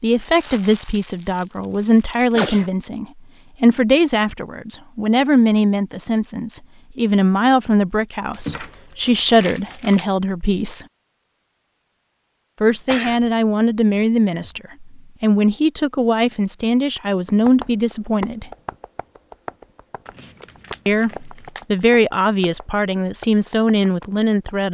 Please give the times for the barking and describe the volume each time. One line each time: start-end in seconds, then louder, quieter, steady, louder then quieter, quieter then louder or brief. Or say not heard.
not heard.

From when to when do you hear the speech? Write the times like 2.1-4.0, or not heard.
0.0-10.8, 12.6-18.5, 20.9-24.6.